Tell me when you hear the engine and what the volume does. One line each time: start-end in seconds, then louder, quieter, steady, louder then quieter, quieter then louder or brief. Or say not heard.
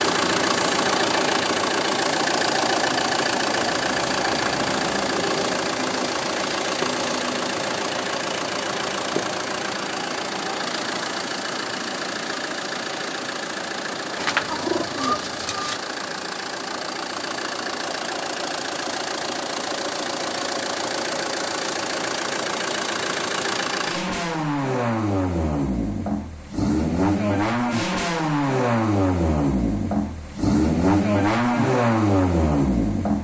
0.0-33.1 quieter then louder.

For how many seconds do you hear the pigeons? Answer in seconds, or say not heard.
2 s.